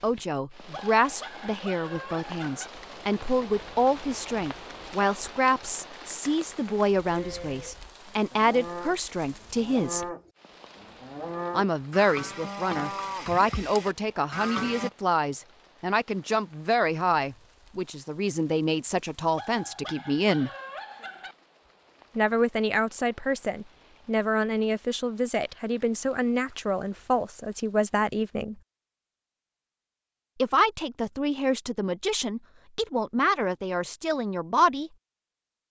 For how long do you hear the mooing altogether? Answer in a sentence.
The mooing can be heard for 8 seconds in total.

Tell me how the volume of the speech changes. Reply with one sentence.
The volume of the speech stays about the same.